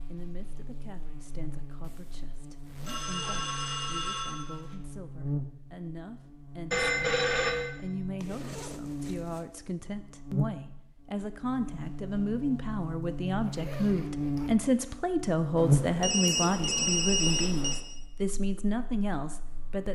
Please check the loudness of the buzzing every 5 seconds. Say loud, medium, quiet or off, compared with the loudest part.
quiet, medium, medium, loud.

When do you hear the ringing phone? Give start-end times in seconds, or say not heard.
2.9-4.8, 6.7-7.8, 15.6-17.8.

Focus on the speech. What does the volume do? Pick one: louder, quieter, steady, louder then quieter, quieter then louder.
louder.